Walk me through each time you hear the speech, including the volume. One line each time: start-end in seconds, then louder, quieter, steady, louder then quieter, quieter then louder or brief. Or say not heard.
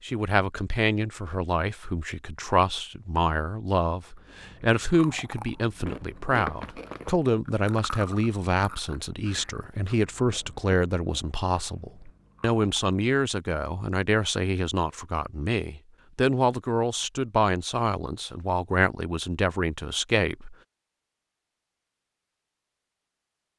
0.0-20.6 steady.